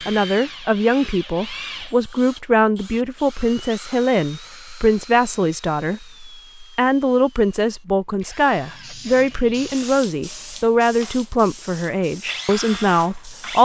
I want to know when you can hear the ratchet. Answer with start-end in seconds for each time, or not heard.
not heard.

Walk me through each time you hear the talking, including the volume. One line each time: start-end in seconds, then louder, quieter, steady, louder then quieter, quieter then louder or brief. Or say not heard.
0.1-13.6 steady.